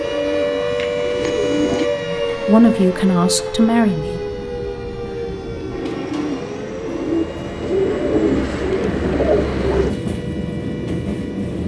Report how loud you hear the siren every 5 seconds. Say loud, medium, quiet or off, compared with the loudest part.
loud, medium, quiet.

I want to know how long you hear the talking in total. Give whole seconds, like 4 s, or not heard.
2 s.